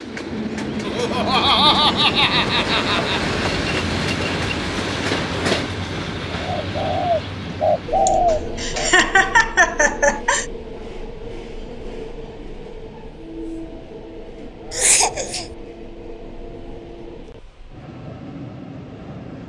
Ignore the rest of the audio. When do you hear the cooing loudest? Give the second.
8 s.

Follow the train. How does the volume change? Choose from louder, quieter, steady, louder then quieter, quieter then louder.
quieter.